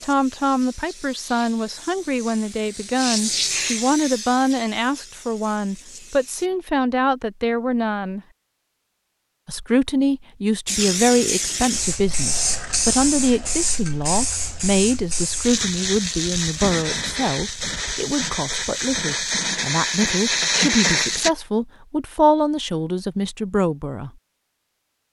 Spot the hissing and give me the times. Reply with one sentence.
The hissing can be heard from 0.0 to 6.5 s and from 10.7 to 21.3 s.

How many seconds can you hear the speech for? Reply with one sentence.
You can hear the speech for 23 seconds altogether.